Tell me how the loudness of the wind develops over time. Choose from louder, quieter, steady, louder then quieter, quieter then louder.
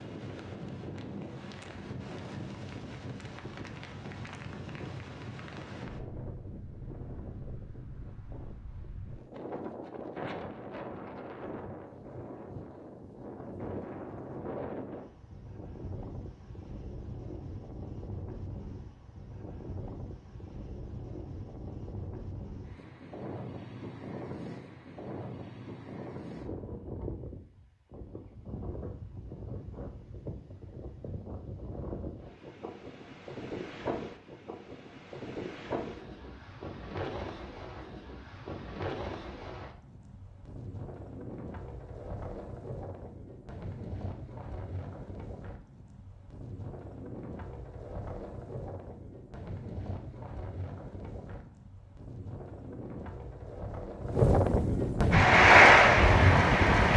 louder.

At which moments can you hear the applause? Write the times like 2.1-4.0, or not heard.
55.1-56.9.